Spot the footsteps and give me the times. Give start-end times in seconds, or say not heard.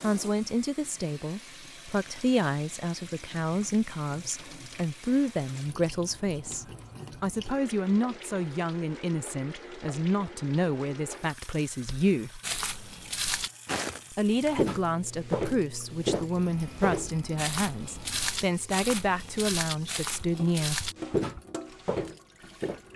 11.8-22.8.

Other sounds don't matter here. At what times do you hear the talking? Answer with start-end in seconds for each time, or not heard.
0.0-12.4, 14.1-20.9.